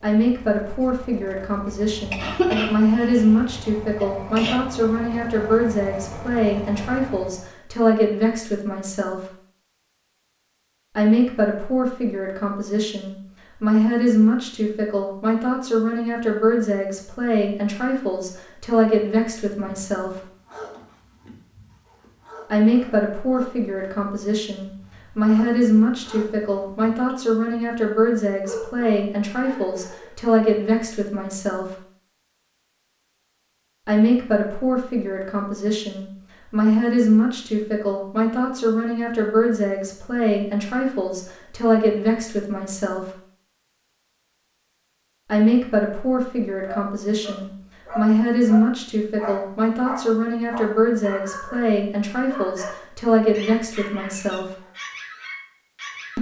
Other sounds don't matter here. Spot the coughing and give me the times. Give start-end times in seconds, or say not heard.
2.1-4.6.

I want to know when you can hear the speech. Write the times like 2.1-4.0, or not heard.
0.0-9.3, 10.9-20.2, 22.5-31.8, 33.9-43.1, 45.2-54.5.